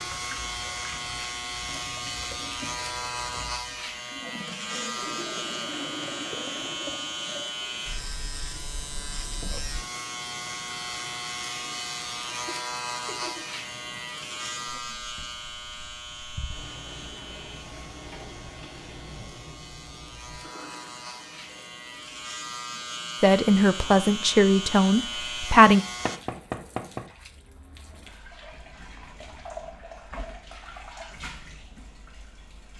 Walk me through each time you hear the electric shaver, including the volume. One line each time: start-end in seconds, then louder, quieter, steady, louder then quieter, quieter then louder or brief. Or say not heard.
0.0-26.2 quieter then louder.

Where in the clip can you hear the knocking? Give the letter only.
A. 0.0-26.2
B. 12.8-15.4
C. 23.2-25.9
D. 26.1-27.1
D.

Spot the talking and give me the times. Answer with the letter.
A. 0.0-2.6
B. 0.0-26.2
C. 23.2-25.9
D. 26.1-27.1
C.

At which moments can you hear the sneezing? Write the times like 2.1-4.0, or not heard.
not heard.